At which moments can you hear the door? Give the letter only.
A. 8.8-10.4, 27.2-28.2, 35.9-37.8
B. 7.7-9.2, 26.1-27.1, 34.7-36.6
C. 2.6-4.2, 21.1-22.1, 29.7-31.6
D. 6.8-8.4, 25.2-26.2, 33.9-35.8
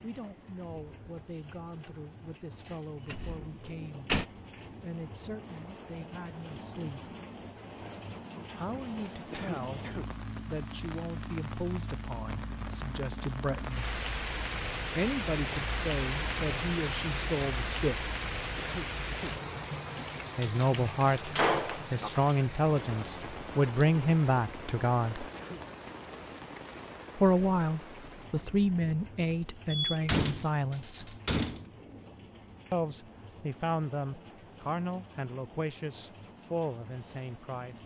C.